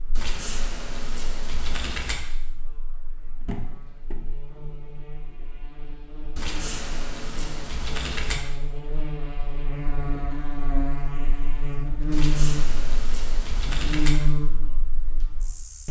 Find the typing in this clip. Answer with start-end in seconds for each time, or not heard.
0.1-2.1, 6.3-8.3, 12.1-14.2.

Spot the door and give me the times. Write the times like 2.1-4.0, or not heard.
3.4-4.2.